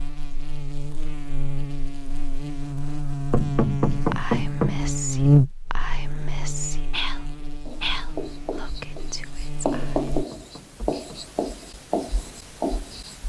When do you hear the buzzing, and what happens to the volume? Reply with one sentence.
The buzzing can be heard from 0.0 to 10.2 s, getting louder then quieter.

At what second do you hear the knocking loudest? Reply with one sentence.
The loudest moment of the knocking is at 4 seconds.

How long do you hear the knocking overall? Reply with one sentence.
You can hear the knocking for 3 seconds altogether.